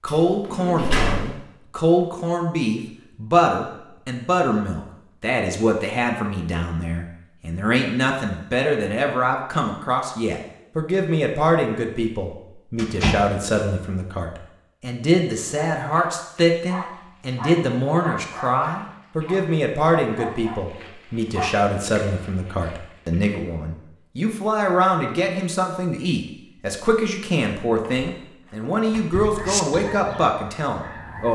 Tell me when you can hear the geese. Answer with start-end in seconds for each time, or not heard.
29.4-31.3.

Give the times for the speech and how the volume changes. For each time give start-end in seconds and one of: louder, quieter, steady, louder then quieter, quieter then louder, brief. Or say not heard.
0.0-31.3 steady.